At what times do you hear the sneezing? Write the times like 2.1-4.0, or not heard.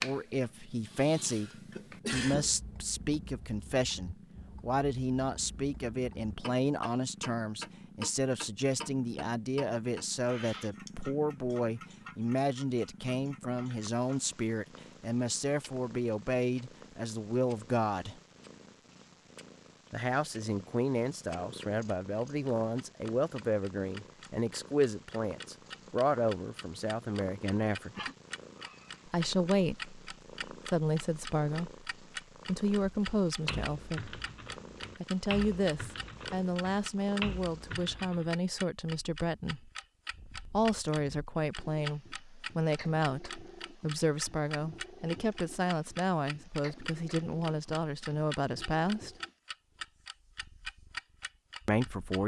0.8-2.5, 27.9-29.0.